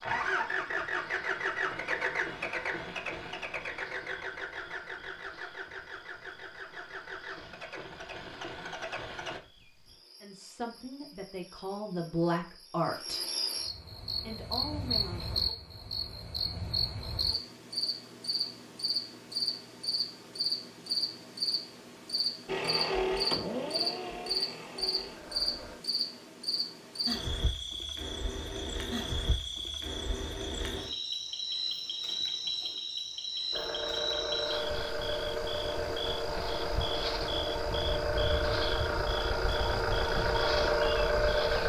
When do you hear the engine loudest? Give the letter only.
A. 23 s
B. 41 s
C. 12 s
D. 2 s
B.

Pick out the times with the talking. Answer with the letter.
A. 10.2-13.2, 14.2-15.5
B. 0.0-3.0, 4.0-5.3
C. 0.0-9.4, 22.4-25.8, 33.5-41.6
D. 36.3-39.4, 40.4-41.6
A.